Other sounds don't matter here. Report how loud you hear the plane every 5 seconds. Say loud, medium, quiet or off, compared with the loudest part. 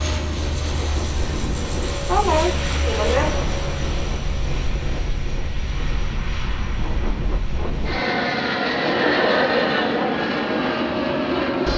medium, loud, loud.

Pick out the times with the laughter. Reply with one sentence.
The laughter can be heard from 1.9 to 3.5 s and from 8.7 to 10.0 s.